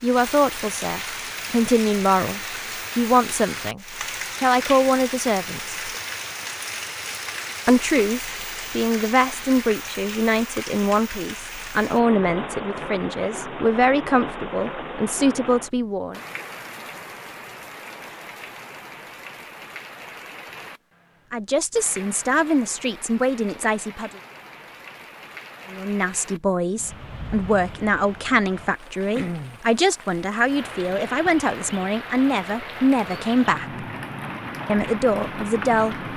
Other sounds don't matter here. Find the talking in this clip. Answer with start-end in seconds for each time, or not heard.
0.0-5.8, 7.7-16.2, 21.3-24.1, 25.7-33.9, 34.6-36.0.